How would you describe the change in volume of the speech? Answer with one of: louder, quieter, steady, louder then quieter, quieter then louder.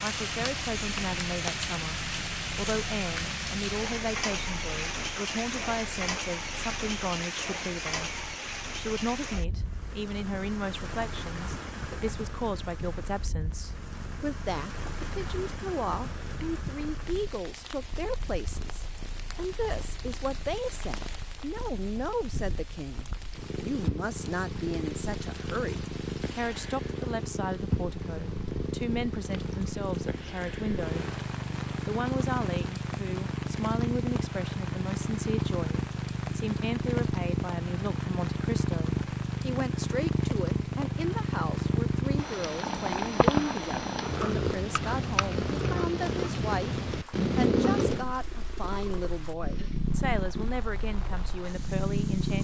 steady.